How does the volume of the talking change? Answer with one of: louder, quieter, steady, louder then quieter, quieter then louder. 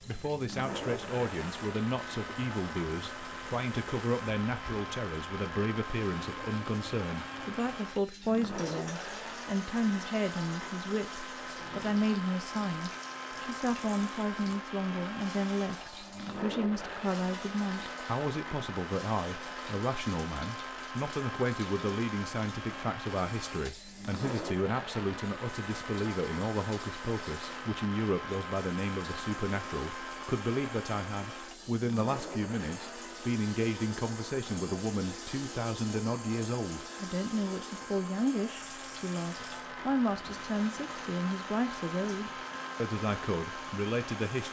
steady.